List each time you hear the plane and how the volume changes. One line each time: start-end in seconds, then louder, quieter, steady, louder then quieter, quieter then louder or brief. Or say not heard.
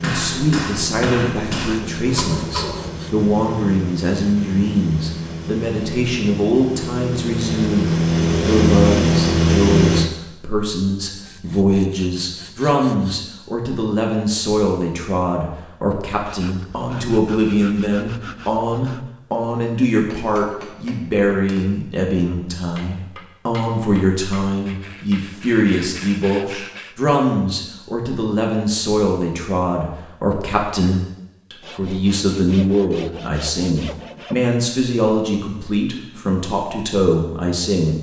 0.0-10.1 louder.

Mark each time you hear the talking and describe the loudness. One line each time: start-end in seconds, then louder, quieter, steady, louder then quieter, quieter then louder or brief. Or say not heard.
0.0-37.9 steady.